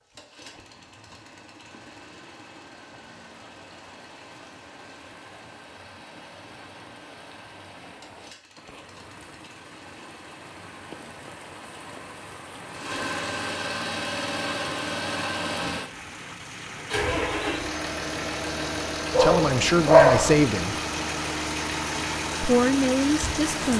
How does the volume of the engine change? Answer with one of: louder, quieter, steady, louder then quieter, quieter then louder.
louder.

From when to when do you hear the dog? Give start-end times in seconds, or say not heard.
19.1-20.4.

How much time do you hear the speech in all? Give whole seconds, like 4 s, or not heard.
3 s.